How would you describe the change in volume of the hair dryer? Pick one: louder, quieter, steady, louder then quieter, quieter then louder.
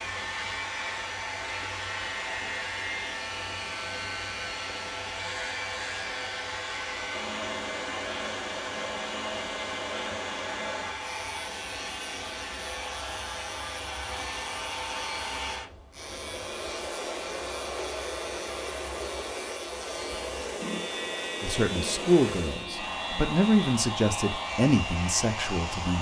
steady.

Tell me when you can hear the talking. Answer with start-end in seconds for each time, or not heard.
21.4-25.9.